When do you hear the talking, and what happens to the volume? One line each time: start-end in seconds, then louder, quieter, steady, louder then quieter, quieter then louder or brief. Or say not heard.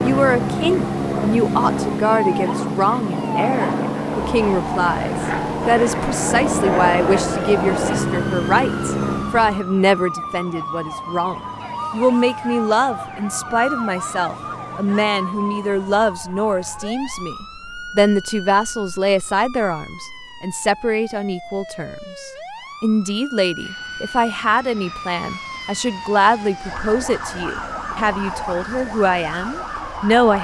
0.0-30.4 steady.